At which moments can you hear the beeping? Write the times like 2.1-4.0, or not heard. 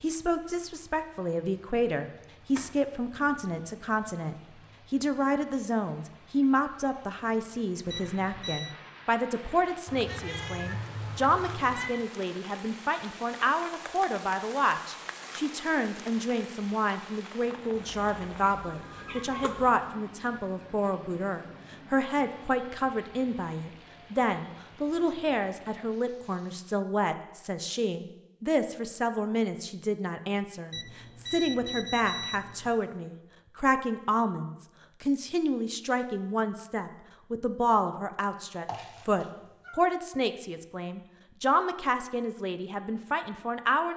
7.9-8.8, 30.7-32.8.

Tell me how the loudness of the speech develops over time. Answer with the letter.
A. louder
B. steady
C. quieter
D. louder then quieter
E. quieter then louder
B.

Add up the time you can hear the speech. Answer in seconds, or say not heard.
44 s.